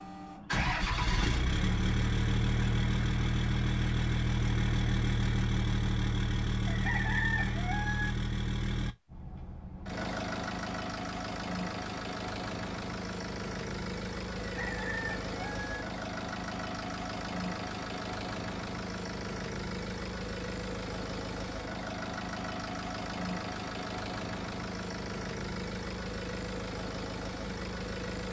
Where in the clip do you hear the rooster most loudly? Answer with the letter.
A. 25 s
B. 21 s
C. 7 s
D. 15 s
C.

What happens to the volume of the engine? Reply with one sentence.
The loudness of the engine goes down.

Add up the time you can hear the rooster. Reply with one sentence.
You can hear the rooster for 3 seconds altogether.